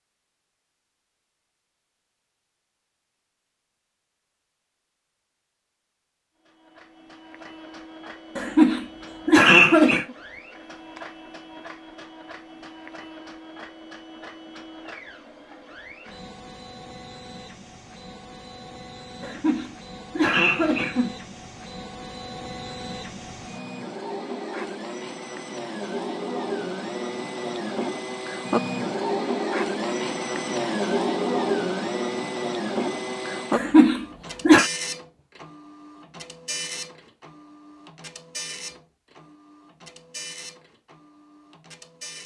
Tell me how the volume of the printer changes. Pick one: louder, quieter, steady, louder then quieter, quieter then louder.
louder then quieter.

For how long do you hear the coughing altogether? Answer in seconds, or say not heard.
5 s.